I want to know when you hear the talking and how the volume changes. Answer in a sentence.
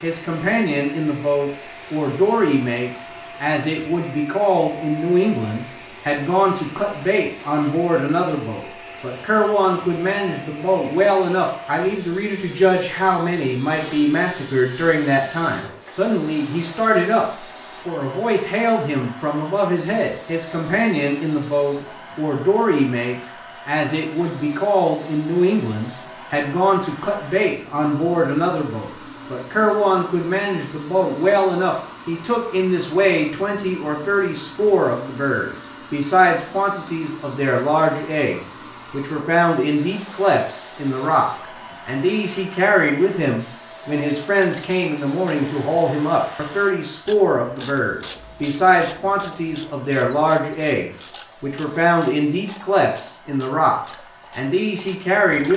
You can hear the talking from 0.0 to 55.5 s, at a steady volume.